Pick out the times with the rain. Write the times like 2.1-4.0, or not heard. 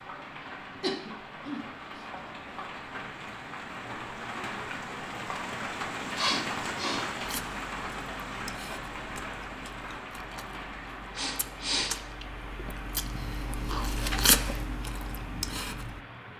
0.0-16.3.